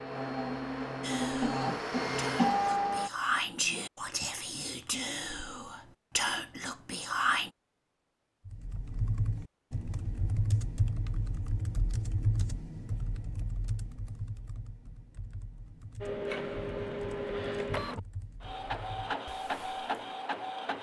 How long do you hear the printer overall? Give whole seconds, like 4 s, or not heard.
8 s.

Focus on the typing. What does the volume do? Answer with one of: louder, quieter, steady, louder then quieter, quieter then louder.
quieter.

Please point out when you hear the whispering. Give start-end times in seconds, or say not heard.
1.0-7.5.